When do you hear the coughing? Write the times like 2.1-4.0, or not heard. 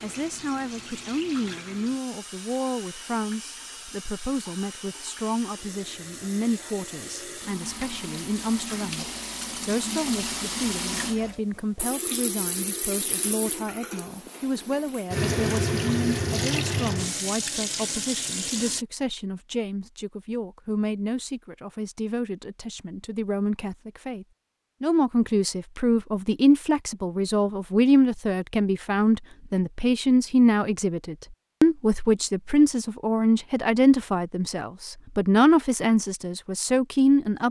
not heard.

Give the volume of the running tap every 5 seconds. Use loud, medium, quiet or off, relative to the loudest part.
quiet, medium, medium, loud, off, off, off, off.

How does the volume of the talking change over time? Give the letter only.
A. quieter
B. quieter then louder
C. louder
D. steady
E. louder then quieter
C.